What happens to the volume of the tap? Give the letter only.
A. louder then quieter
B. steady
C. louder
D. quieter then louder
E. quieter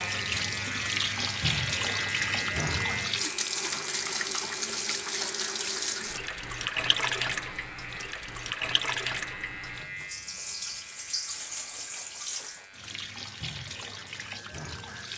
E.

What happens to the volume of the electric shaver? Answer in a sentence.
The volume of the electric shaver goes down.